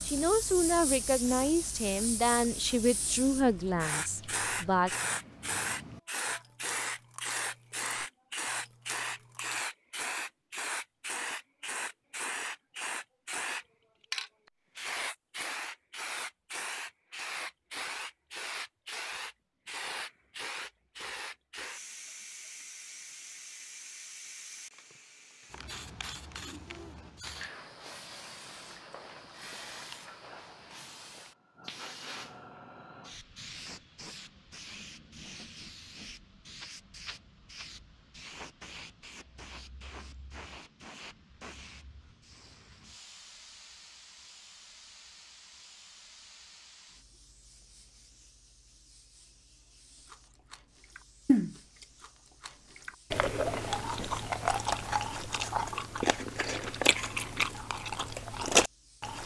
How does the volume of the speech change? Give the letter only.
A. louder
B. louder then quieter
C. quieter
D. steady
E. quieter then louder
C.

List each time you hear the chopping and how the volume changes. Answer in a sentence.
The chopping can't be heard in this clip.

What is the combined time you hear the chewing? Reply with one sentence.
The chewing can be heard for 19 seconds in total.